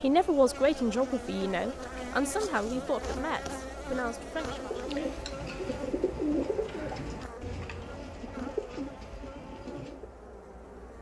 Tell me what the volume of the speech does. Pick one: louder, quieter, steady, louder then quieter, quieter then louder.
quieter.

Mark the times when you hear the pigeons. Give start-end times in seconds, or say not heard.
4.4-10.1.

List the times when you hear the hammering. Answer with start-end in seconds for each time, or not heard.
not heard.